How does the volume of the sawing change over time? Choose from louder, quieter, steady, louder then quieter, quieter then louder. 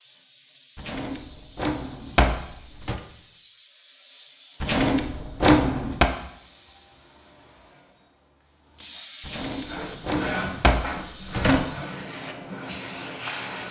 quieter.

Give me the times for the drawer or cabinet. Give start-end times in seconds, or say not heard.
0.8-3.0, 4.6-6.1, 9.2-11.8.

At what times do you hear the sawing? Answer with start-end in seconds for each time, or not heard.
9.6-13.6.